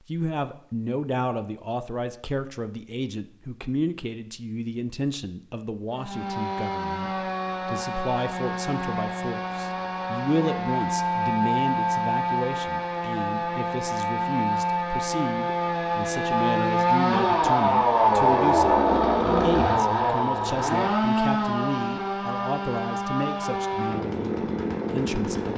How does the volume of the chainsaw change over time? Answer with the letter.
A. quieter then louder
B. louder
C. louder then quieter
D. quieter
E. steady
C.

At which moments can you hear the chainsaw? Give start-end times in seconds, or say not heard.
5.9-25.5.